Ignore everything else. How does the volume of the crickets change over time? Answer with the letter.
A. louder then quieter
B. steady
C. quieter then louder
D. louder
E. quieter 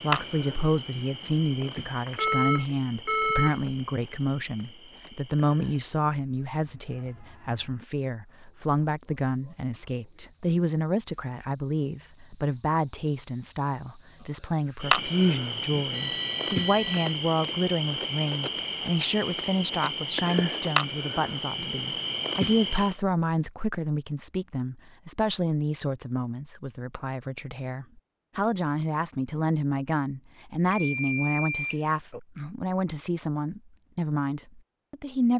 C.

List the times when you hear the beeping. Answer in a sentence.
You can hear the beeping from 2.0 to 3.6 s, from 15.9 to 17.1 s and from 30.7 to 32.2 s.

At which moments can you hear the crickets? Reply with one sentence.
The crickets can be heard from 0.0 to 22.9 s.